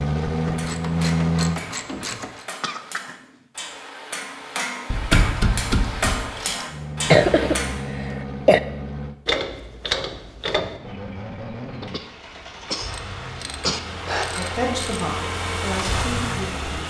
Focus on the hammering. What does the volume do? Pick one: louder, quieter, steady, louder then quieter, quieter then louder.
louder.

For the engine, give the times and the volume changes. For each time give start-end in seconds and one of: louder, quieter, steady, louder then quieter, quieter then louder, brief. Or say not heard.
0.0-1.6 brief
6.7-9.2 brief
10.8-16.8 louder.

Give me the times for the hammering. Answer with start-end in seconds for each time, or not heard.
0.3-7.8.